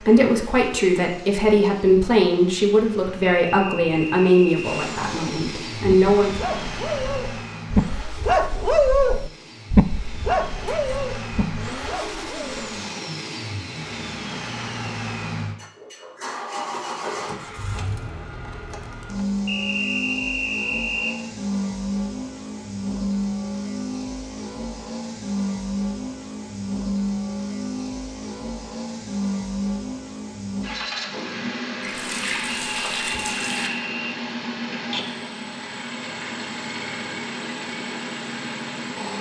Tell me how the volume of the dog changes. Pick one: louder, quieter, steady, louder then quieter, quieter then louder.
louder then quieter.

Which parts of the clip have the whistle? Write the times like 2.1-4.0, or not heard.
3.4-4.9, 19.4-21.1, 32.6-34.2.